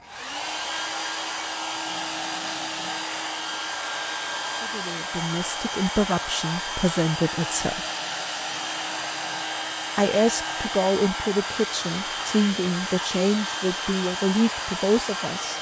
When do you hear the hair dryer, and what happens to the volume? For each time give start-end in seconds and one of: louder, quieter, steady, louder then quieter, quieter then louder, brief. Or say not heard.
0.0-15.5 steady.